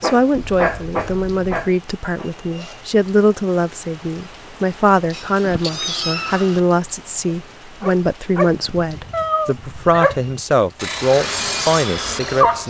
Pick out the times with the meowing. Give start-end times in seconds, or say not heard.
0.3-1.7, 5.1-6.6, 9.1-10.1.